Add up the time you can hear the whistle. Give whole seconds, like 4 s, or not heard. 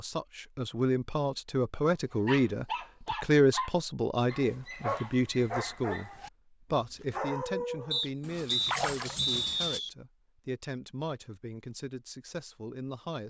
2 s.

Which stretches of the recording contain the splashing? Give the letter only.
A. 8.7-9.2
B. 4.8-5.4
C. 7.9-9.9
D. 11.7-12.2
A.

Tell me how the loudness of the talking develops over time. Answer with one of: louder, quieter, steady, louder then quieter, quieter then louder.
quieter.